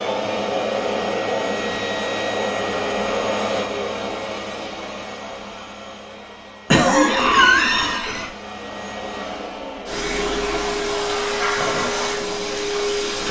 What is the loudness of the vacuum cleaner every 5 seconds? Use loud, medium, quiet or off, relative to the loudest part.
loud, medium, loud.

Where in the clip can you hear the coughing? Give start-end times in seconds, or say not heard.
6.7-8.3.